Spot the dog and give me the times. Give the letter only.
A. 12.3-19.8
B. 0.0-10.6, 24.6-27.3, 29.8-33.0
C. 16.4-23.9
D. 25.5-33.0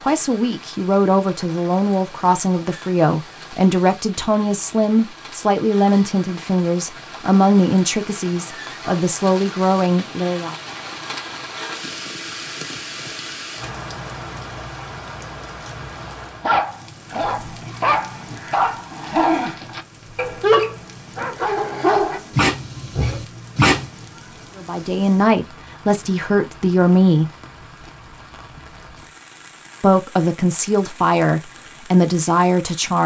C.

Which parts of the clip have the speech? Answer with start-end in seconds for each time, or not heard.
0.0-10.6, 24.6-27.3, 29.8-33.0.